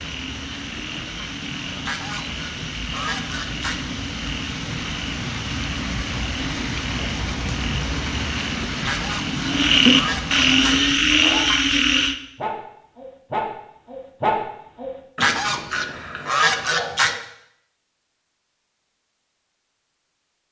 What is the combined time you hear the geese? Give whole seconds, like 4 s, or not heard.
6 s.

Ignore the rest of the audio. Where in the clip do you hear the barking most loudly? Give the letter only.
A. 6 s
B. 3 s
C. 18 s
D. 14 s
D.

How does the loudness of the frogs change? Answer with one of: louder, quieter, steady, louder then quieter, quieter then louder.
louder.